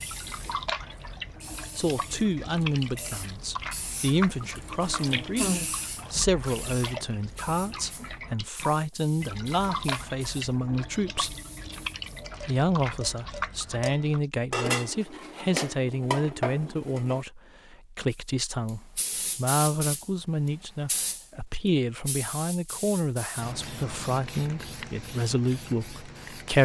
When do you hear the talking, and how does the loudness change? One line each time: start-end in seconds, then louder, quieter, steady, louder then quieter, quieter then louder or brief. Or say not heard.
1.8-11.3 steady
12.4-26.6 steady.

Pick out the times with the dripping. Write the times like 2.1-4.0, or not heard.
0.0-14.2.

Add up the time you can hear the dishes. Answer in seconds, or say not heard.
5 s.